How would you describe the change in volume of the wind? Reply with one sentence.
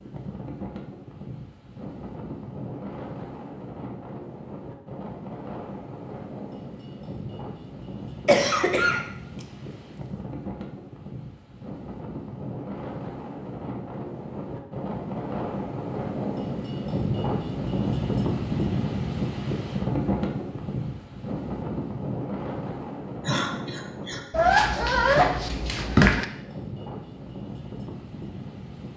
The loudness of the wind goes up, then down.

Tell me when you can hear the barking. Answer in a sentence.
The barking can be heard from 24.3 to 26.2 s.